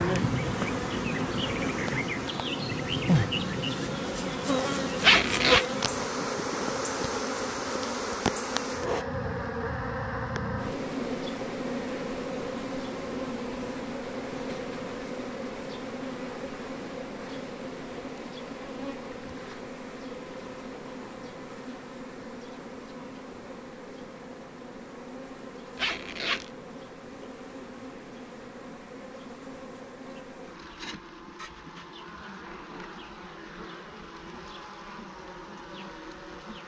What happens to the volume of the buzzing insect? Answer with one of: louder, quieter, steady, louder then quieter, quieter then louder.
quieter.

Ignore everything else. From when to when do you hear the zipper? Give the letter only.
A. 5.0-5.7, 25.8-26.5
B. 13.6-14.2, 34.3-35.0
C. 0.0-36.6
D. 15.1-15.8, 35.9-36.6
A.